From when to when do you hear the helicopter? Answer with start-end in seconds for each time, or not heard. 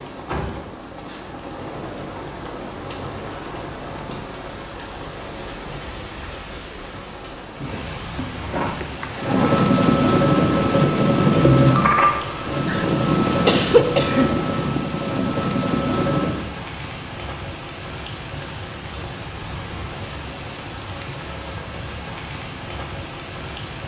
9.2-16.4.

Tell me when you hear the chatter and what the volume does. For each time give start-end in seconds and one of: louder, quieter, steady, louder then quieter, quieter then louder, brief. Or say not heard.
not heard.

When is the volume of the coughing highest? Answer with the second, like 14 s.
14 s.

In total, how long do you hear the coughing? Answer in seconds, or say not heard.
3 s.